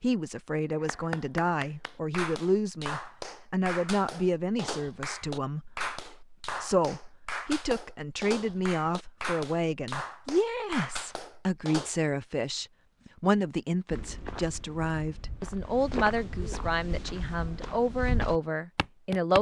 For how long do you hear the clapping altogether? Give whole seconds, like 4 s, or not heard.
11 s.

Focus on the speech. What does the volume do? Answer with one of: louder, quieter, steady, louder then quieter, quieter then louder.
steady.